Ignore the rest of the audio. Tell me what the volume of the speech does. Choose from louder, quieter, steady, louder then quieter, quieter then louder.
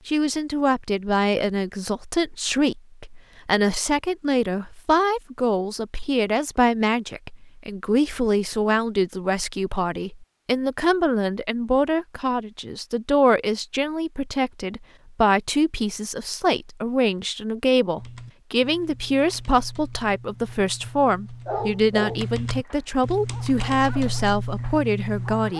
steady.